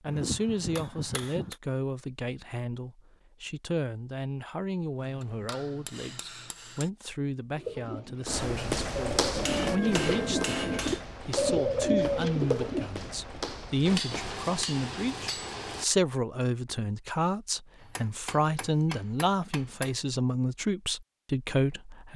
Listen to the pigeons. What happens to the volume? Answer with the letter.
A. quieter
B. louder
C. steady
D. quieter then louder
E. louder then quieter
B.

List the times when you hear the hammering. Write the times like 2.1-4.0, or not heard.
0.1-1.6, 5.0-6.9, 9.3-11.1, 13.8-15.8, 17.8-19.9.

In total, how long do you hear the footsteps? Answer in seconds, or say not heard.
6 s.